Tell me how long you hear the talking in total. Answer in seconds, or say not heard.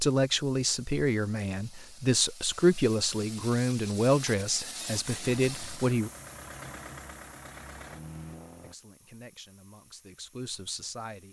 9 s.